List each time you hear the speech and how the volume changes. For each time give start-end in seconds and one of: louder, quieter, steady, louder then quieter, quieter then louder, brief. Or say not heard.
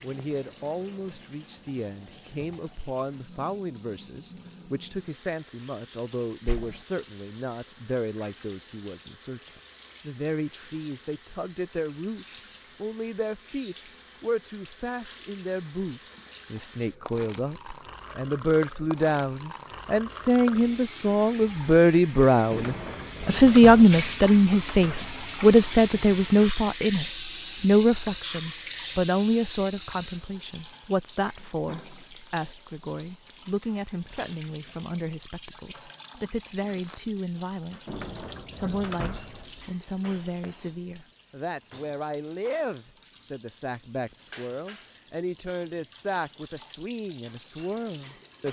0.0-48.4 louder then quieter.